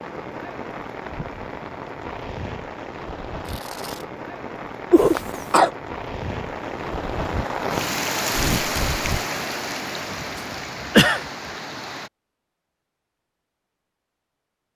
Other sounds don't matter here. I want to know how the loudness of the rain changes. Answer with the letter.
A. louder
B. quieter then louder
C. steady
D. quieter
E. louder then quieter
E.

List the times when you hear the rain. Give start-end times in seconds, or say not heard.
0.0-12.1.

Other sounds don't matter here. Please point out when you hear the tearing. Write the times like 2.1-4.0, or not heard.
3.5-4.0, 8.3-9.2.